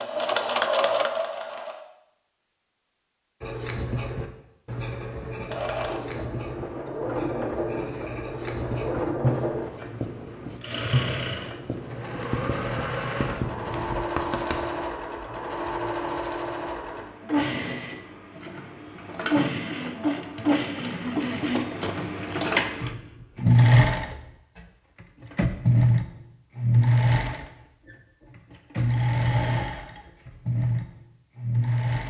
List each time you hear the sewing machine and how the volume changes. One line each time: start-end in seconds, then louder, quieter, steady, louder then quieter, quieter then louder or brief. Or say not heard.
0.0-1.8 brief
5.5-32.0 louder.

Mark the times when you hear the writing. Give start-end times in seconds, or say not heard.
3.4-14.7.